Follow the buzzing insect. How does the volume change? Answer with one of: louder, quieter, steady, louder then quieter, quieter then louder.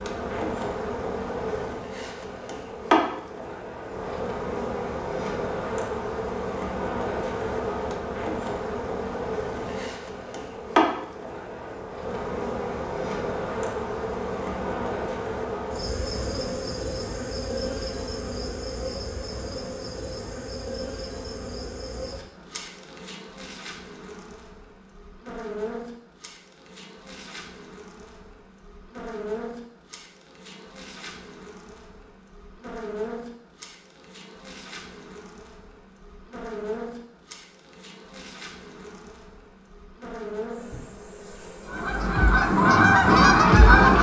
quieter.